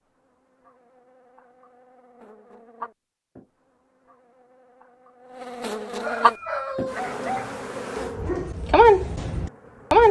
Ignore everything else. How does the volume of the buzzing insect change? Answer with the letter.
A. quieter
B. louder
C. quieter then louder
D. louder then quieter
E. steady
D.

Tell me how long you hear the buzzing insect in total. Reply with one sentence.
The buzzing insect can be heard for 10 seconds in total.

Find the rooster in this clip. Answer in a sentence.
You can hear the rooster from 6.0 to 7.3 s.